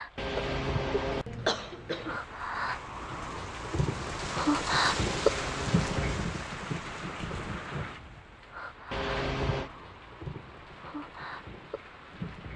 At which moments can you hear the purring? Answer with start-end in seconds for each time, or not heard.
not heard.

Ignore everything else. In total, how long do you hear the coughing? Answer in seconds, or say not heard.
4 s.